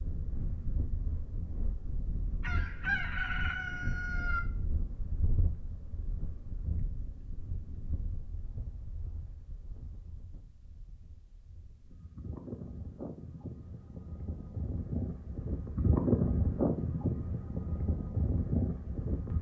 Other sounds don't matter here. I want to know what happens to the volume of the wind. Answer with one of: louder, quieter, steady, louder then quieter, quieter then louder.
quieter then louder.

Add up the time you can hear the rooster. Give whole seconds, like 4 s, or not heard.
2 s.